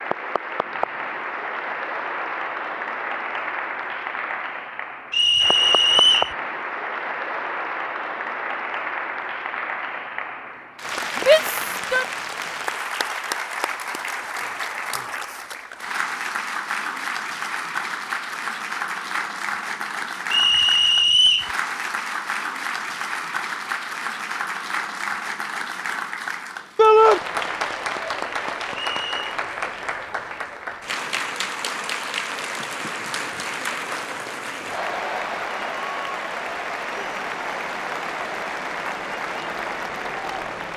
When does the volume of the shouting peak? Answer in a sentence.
The volume of the shouting peaks at 27 seconds.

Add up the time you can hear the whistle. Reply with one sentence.
The whistle can be heard for 3 seconds in total.